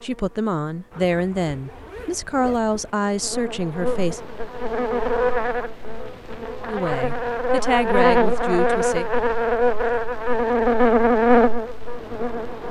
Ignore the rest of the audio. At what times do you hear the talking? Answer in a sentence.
The talking can be heard from 0.0 to 4.2 s and from 6.7 to 9.1 s.